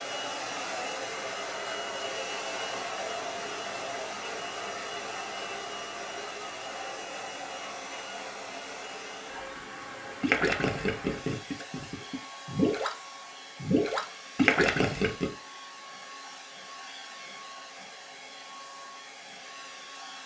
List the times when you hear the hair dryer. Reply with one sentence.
The hair dryer can be heard from 0.0 to 20.2 s.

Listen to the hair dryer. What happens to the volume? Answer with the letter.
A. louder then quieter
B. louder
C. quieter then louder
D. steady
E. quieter
E.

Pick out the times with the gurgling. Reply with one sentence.
You can hear the gurgling from 10.2 to 12.9 s and from 13.6 to 15.3 s.